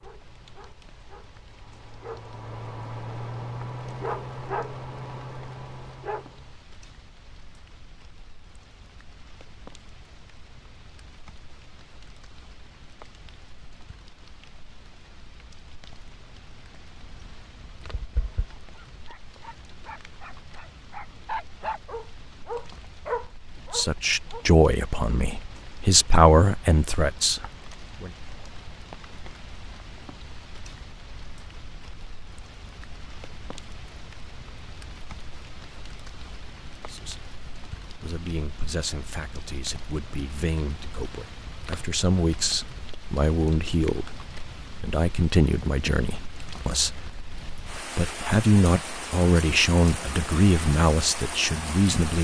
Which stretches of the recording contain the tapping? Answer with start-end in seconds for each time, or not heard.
17.0-18.4.